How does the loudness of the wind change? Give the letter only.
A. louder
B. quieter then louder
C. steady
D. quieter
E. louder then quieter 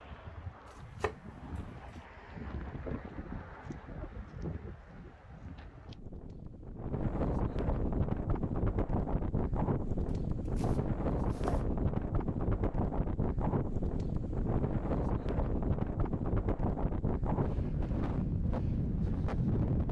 A.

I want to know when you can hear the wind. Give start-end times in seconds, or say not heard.
0.0-19.8.